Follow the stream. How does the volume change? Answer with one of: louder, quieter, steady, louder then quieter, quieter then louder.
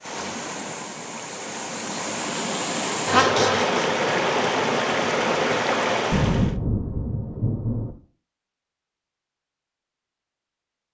louder.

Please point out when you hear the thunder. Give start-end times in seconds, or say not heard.
6.1-8.0.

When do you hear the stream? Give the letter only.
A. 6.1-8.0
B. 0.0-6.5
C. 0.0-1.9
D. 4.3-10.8
B.